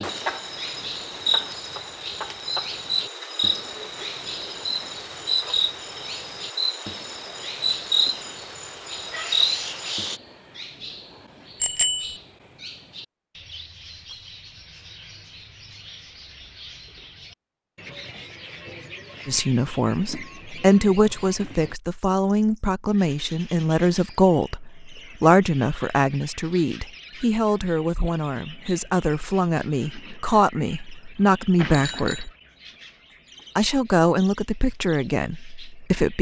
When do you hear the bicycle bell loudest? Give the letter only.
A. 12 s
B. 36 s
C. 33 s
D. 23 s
A.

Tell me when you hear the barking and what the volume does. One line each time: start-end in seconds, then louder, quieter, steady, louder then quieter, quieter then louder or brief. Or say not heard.
not heard.